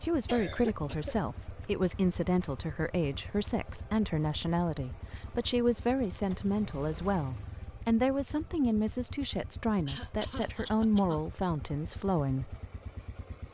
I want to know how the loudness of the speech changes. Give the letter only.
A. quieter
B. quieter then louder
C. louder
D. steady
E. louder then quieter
D.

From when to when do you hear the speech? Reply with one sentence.
The speech can be heard from 0.0 to 12.6 s.